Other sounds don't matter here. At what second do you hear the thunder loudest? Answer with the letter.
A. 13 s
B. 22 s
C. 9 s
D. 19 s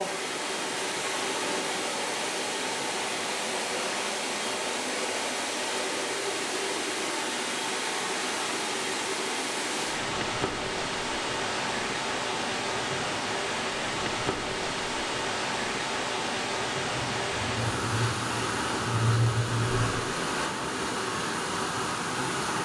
D.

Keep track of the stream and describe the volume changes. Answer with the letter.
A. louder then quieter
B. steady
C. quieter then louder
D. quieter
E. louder
B.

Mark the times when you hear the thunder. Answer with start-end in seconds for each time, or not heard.
16.9-20.1.